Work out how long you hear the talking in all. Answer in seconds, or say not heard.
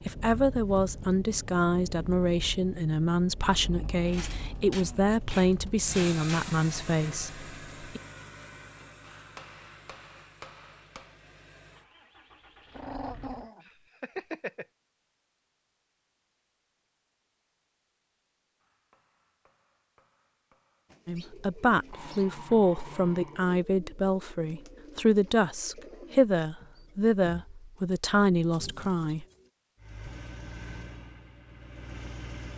16 s.